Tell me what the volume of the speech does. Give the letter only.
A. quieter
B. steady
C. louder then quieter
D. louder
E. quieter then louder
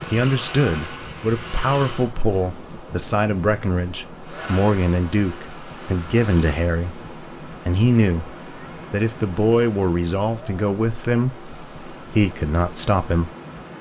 B.